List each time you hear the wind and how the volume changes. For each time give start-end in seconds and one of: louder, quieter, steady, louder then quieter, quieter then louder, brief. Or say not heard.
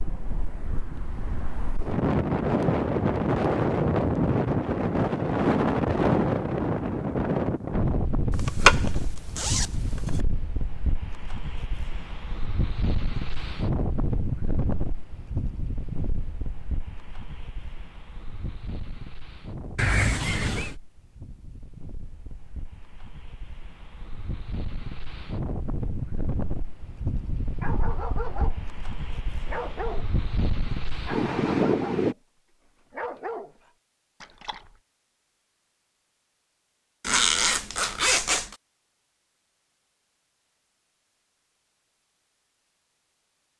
0.0-32.1 quieter then louder.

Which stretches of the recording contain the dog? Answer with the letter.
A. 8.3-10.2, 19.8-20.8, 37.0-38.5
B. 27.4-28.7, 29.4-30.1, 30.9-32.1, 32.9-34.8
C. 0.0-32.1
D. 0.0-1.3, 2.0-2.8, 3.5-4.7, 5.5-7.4
B.